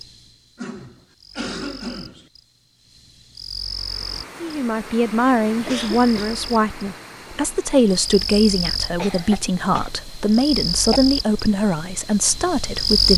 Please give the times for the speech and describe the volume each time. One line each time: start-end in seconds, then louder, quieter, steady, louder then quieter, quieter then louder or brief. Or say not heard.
4.4-13.1 steady.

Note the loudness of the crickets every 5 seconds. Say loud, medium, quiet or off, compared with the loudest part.
quiet, medium, loud.